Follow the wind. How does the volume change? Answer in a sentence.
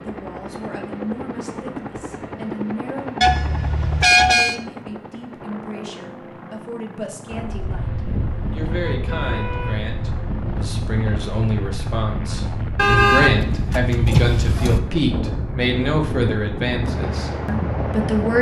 The loudness of the wind stays about the same.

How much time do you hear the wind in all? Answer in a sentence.
You can hear the wind for 11 seconds altogether.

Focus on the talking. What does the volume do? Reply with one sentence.
The volume of the talking goes up.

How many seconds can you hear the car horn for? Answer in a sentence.
The car horn can be heard for 5 seconds in total.